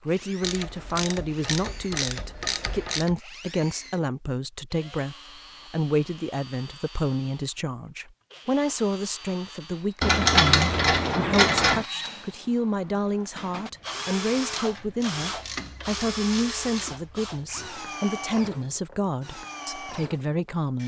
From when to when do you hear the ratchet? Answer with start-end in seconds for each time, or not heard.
0.4-3.1, 10.0-11.8, 14.6-17.1.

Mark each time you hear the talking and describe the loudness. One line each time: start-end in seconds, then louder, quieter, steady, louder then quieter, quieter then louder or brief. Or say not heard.
0.1-20.8 steady.